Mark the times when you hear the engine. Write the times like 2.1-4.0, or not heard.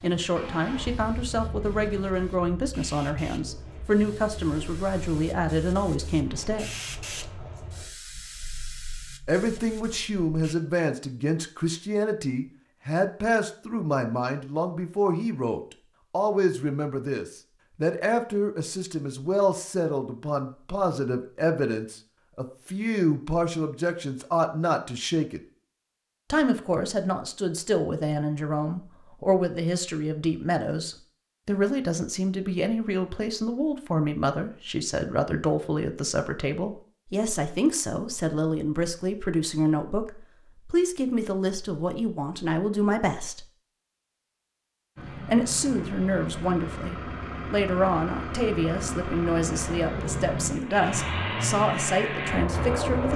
0.0-7.8, 45.0-53.1.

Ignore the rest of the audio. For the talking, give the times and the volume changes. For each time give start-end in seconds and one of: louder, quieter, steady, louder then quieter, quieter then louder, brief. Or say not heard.
0.0-6.8 steady
9.2-25.4 steady
26.3-43.5 steady
45.2-53.1 steady.